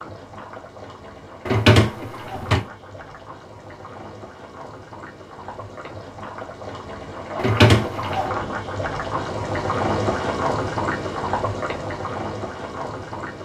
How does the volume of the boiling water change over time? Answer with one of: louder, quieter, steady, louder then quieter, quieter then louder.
louder.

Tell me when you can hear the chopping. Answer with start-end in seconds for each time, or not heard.
not heard.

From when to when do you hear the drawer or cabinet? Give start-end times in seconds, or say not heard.
1.4-2.6, 7.3-8.1.